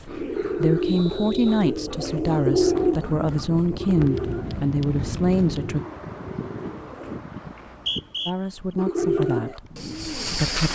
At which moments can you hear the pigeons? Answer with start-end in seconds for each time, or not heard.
0.1-7.2, 8.8-10.7.